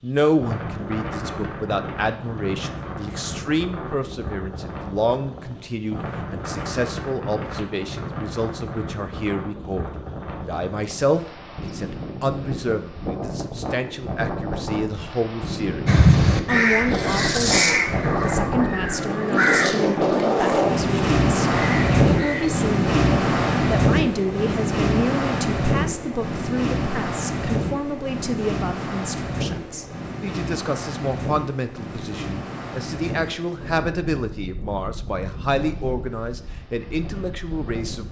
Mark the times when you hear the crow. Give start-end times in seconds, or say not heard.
15.8-22.6.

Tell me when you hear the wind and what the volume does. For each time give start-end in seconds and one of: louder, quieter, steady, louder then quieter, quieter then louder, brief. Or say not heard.
0.0-38.0 louder then quieter.